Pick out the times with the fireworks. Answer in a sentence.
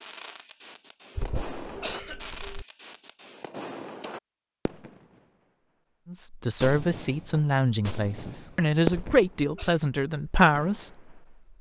The fireworks can be heard from 0.0 to 5.2 s, from 6.6 to 9.4 s and from 10.3 to 11.1 s.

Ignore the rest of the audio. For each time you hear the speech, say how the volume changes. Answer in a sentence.
You can hear the speech from 6.0 to 11.1 s, at a steady volume.